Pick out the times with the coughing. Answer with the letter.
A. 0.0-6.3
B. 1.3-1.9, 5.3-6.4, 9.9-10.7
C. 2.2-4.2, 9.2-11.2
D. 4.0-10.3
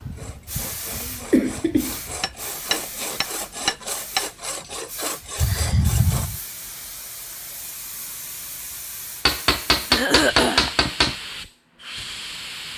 B.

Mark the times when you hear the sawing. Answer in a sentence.
The sawing can be heard from 0.0 to 6.3 s.